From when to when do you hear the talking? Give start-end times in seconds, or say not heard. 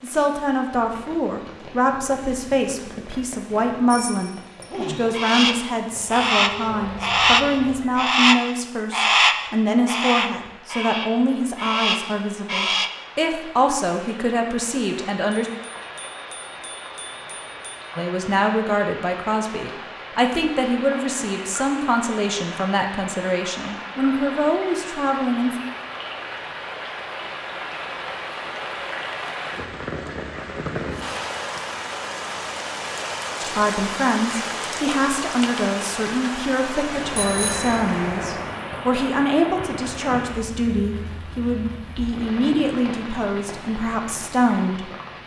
0.0-15.5, 17.9-25.6, 33.4-44.9.